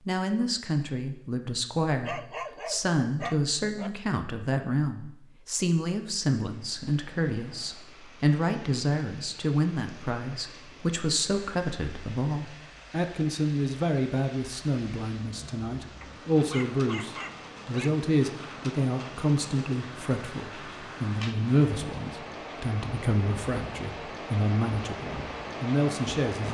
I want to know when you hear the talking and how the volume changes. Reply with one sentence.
You can hear the talking from 0.1 to 26.4 s, at a steady volume.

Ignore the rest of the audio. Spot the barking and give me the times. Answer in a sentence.
The barking can be heard from 2.0 to 3.9 s and from 16.0 to 17.9 s.